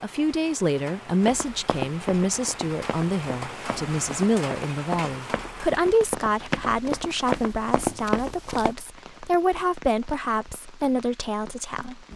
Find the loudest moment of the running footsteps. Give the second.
8 s.